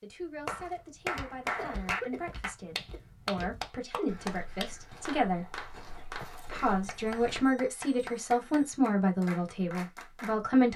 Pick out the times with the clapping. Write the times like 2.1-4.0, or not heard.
0.5-10.4.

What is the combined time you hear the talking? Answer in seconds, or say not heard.
10 s.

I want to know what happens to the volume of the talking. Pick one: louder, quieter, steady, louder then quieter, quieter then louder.
louder.